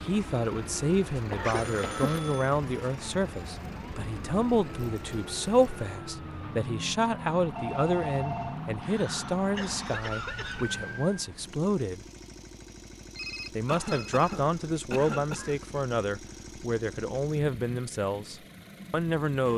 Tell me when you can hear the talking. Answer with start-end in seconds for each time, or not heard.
0.0-12.0, 13.6-19.5.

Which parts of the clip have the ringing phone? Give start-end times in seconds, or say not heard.
1.4-2.5, 7.5-8.6, 13.2-14.3.